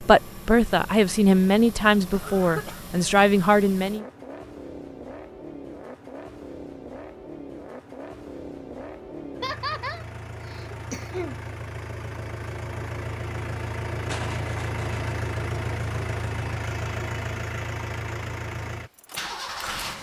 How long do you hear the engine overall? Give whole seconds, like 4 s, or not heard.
20 s.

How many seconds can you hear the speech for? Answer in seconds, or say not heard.
4 s.